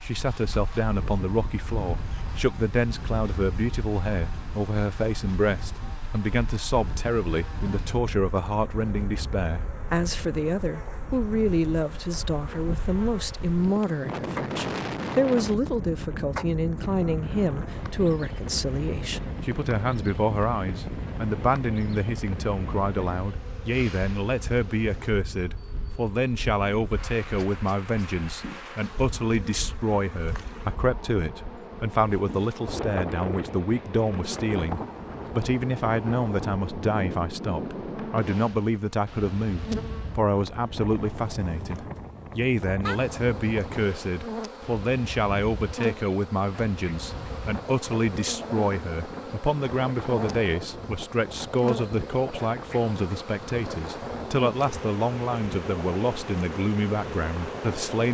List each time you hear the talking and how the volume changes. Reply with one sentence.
The talking can be heard from 0.0 to 58.0 s, at a steady volume.